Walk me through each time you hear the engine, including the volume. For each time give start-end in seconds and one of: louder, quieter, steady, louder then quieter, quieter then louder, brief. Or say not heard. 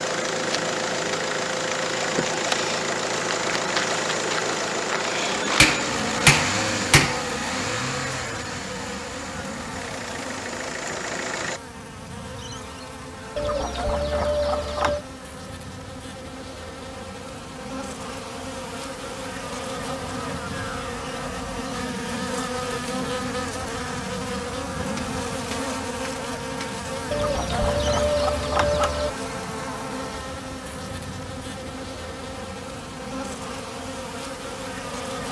0.0-11.6 quieter.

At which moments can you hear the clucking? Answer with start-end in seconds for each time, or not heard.
13.3-15.1, 27.1-29.1.